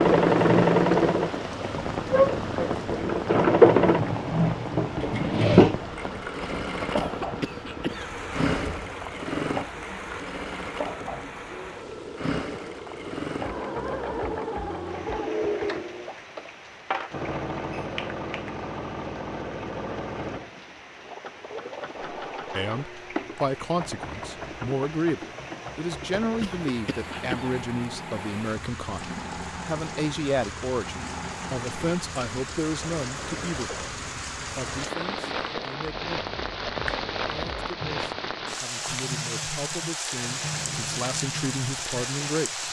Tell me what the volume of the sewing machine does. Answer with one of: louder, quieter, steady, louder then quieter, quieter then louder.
quieter.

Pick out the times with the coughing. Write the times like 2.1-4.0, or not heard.
7.0-8.1, 26.4-27.5.